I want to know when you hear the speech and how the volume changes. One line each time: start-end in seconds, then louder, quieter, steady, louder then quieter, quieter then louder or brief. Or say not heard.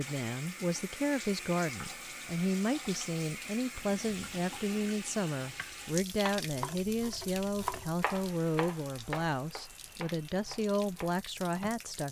0.0-12.0 steady.